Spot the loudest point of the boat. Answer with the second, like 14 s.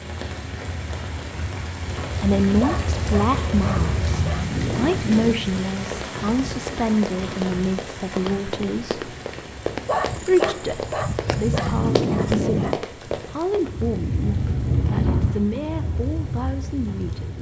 15 s.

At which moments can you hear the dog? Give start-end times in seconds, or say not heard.
2.6-5.3, 9.8-12.8.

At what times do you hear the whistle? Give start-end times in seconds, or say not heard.
not heard.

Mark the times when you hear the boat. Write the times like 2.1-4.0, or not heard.
0.0-4.5, 13.7-17.3.